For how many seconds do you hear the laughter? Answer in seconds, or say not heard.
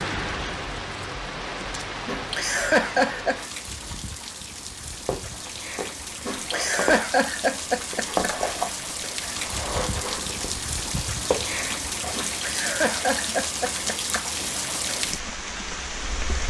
6 s.